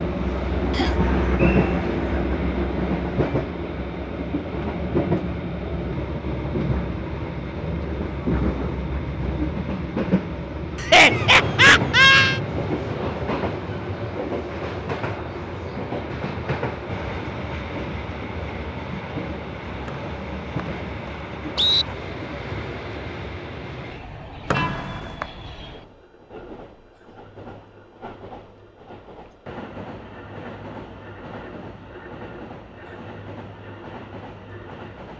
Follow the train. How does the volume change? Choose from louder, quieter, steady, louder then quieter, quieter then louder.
quieter.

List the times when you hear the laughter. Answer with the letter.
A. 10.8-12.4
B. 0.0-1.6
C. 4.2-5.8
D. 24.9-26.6
A.